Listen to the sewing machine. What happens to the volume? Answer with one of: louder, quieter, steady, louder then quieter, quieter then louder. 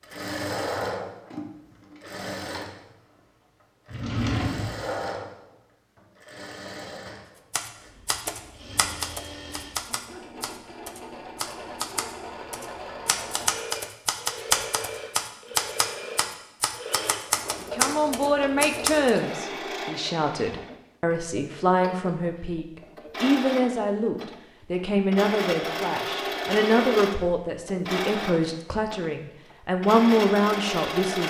quieter then louder.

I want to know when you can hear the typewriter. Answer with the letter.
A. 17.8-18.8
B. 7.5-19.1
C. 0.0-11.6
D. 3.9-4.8
B.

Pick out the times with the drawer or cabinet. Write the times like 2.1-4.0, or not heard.
3.9-4.8.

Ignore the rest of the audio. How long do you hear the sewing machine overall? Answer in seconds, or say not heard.
31 s.